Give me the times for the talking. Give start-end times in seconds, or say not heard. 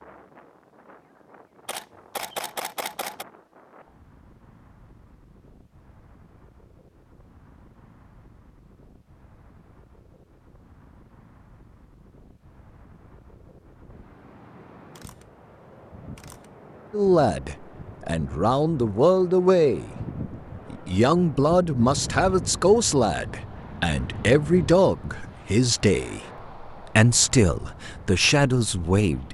16.9-19.9, 20.7-29.2.